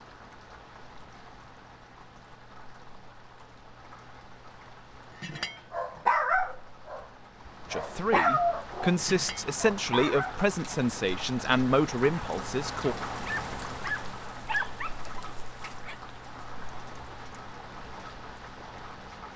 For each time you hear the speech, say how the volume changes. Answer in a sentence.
You can hear the speech from 7.7 to 12.9 s, at a steady volume.